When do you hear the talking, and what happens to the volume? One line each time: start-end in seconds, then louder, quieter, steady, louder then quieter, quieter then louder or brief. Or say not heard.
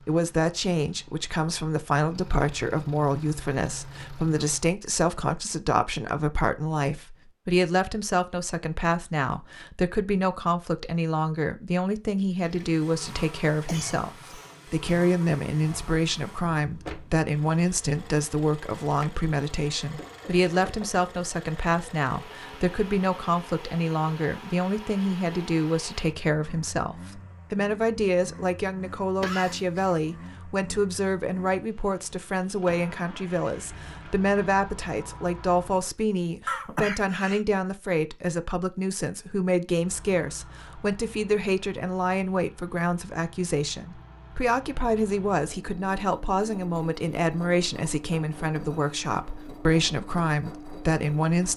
0.1-51.5 steady.